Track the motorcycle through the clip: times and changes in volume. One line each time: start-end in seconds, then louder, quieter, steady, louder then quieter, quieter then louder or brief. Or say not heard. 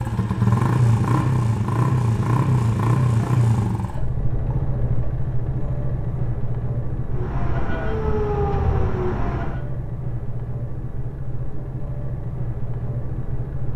0.0-13.7 quieter.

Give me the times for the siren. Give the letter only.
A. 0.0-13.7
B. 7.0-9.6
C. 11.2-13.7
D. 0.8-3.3
B.